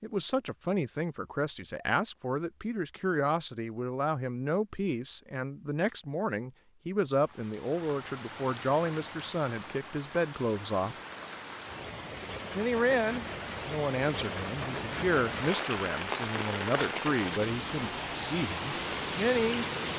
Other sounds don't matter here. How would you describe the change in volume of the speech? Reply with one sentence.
The loudness of the speech stays about the same.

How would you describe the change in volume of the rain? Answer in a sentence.
The volume of the rain goes up.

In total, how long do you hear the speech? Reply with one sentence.
You can hear the speech for 18 seconds altogether.